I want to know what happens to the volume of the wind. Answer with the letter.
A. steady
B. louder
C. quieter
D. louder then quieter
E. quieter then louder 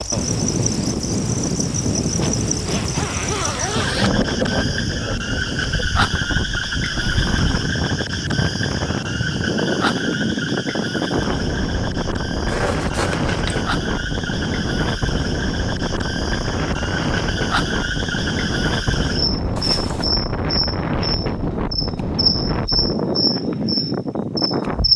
A.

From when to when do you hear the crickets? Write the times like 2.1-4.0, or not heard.
0.0-24.9.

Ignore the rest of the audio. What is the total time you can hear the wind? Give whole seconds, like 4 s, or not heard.
25 s.